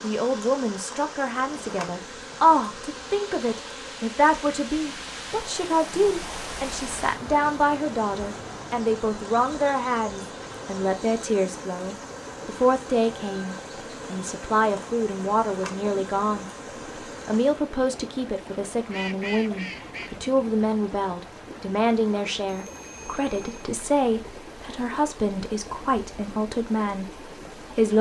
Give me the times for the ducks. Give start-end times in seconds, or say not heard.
18.9-20.2.